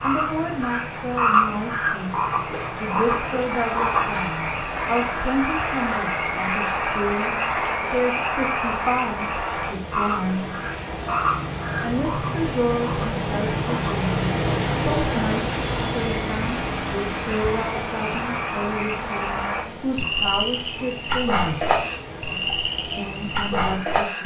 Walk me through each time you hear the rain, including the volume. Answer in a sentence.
The rain can be heard from 0.0 to 24.2 s, getting louder then quieter.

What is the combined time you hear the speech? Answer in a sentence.
The speech can be heard for 22 seconds in total.